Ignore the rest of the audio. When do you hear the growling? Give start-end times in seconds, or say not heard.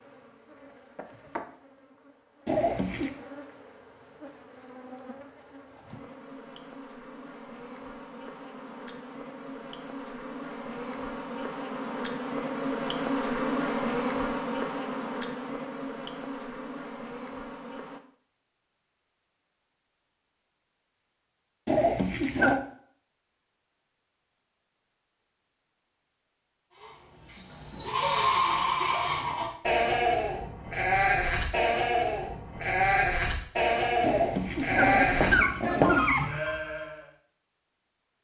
2.5-3.1, 21.6-22.6, 34.0-36.3.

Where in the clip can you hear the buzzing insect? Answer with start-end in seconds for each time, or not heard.
0.0-18.0.